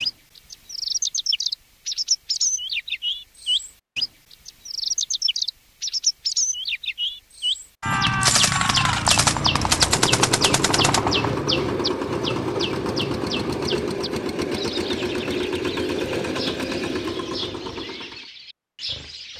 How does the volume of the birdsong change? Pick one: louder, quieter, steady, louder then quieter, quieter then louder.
quieter.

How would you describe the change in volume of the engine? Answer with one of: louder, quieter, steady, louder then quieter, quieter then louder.
steady.